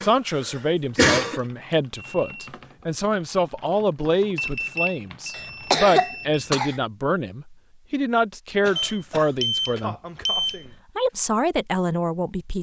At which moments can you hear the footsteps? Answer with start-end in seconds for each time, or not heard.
not heard.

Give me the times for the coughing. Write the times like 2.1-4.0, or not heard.
0.0-1.4, 5.3-6.8, 8.6-10.8.